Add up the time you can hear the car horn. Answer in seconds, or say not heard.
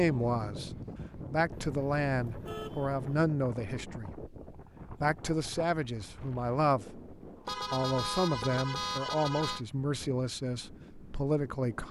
4 s.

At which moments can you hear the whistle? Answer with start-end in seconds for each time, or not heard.
not heard.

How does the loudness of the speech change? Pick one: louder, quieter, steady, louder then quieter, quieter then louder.
steady.